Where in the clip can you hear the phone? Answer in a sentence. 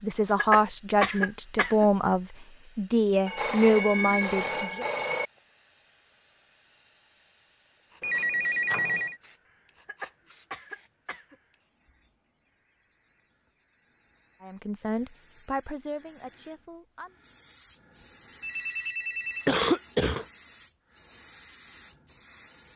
You can hear the phone from 3.2 to 5.3 s, from 8.0 to 9.2 s and from 18.0 to 19.5 s.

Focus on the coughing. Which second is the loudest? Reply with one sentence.
The loudest moment of the coughing is at 20 seconds.